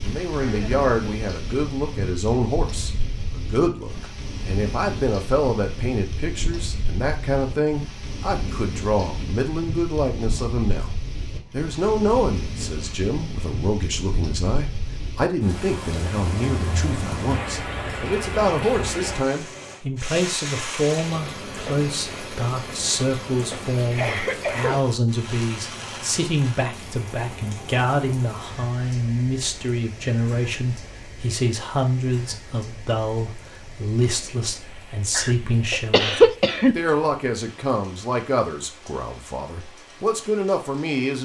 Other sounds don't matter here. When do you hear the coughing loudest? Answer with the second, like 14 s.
36 s.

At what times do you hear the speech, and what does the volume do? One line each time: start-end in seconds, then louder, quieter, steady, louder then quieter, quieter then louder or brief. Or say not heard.
0.0-10.9 steady
11.5-41.2 steady.